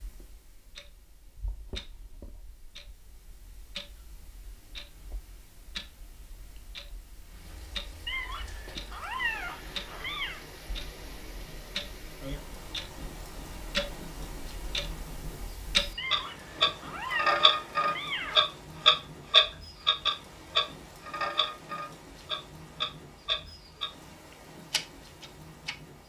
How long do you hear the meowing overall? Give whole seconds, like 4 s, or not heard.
5 s.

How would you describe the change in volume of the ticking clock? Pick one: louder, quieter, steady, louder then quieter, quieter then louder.
louder then quieter.